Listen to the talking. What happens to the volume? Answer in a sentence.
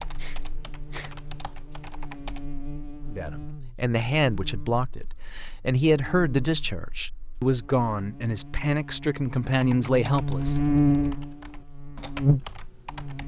The loudness of the talking stays about the same.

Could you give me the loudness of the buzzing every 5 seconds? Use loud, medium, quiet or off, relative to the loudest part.
quiet, quiet, loud.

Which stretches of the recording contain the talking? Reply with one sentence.
The talking can be heard from 3.0 to 10.6 s.